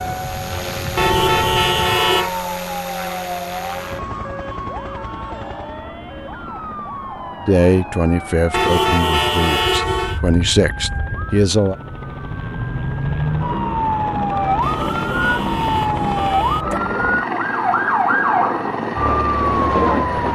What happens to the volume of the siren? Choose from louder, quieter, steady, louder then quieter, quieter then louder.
louder.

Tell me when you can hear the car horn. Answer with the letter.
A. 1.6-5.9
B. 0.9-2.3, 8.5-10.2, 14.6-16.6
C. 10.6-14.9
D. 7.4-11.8
B.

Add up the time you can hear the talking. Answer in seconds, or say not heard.
4 s.